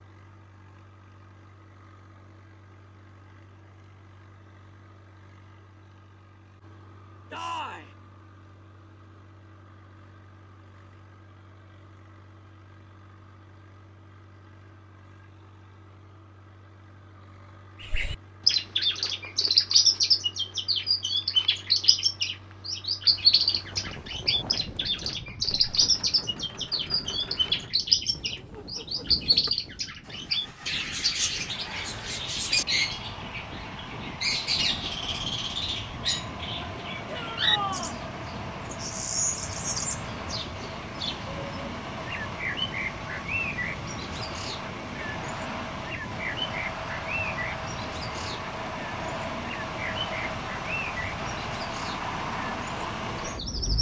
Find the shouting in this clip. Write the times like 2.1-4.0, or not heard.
7.3-7.9, 37.0-38.0.